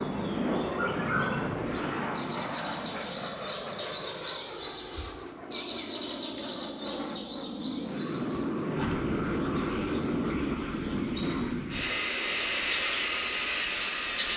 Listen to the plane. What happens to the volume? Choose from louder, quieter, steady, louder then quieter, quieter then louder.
quieter then louder.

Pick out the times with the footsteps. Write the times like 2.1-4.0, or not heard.
not heard.